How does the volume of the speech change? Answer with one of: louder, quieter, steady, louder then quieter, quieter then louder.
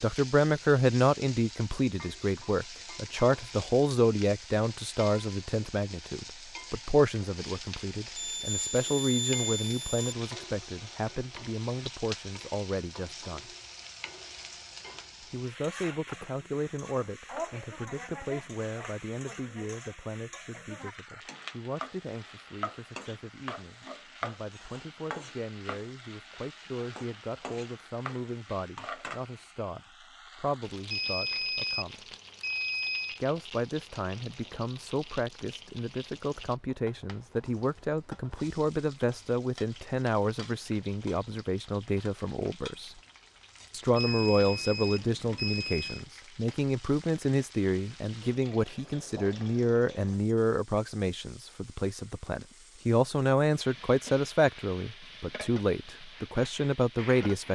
quieter then louder.